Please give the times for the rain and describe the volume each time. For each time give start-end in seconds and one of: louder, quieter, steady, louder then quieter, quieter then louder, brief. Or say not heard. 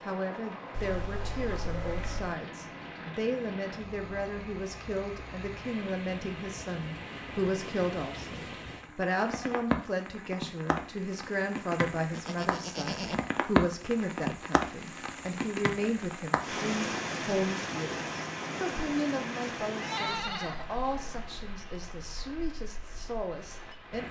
0.0-24.0 louder then quieter.